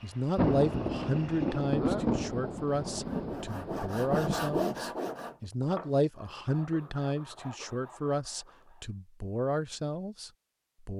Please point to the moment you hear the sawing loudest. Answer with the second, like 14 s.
5 s.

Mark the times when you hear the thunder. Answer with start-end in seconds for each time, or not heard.
0.3-4.6.